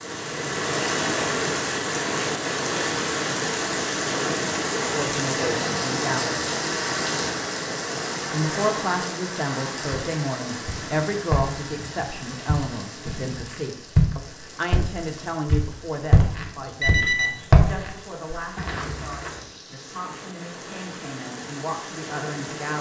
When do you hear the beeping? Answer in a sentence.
The beeping can be heard from 16.5 to 17.6 s.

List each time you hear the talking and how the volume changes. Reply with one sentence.
The talking can be heard briefly from 4.9 to 6.5 s; and from 8.3 to 22.7 s, getting quieter.